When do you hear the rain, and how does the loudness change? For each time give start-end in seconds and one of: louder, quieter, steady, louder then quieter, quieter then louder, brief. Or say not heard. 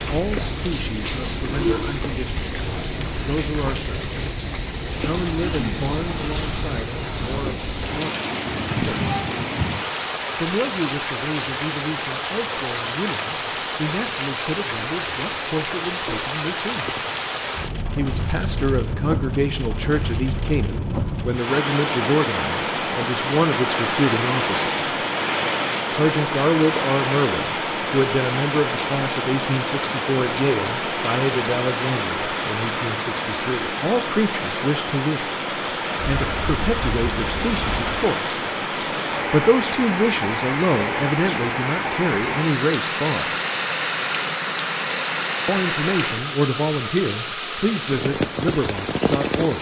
0.0-49.5 steady.